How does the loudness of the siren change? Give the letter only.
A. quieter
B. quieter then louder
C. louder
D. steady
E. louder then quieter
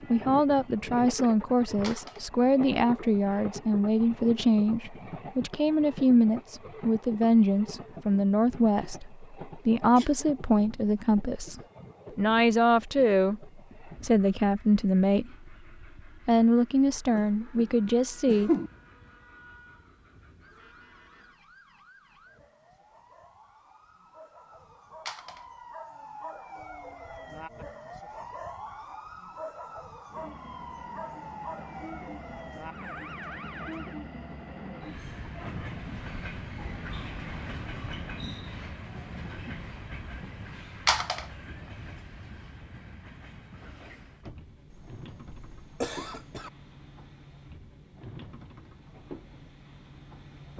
C.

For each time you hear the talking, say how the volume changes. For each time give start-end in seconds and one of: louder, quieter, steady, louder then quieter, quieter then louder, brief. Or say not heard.
0.1-15.6 steady
16.2-18.5 brief.